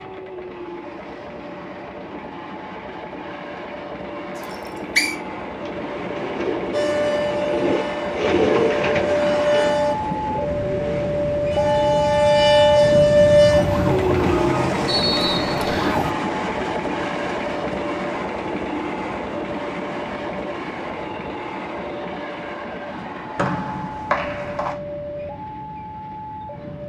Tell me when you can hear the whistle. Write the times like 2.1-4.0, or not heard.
4.3-5.2, 14.8-16.0, 23.4-24.8.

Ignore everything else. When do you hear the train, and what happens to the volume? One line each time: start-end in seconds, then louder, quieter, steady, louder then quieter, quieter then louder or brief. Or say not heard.
0.0-26.8 louder then quieter.